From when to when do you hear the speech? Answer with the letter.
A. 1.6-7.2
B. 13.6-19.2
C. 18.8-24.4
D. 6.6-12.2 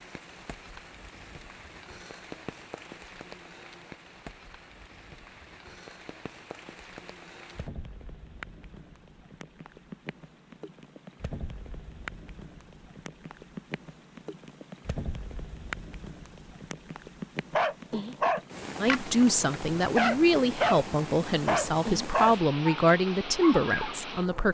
C.